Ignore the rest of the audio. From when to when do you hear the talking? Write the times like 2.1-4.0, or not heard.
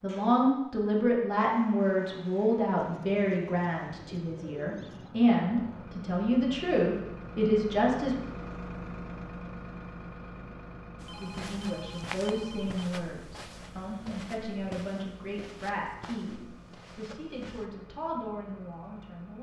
0.0-8.2, 11.2-19.3.